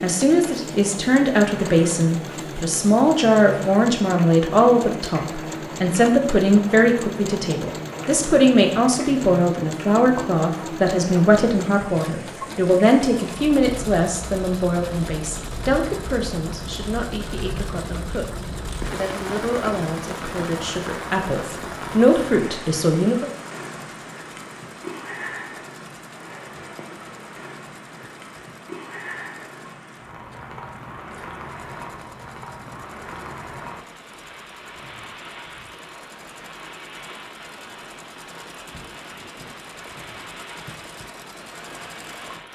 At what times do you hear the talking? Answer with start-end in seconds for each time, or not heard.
0.0-23.3.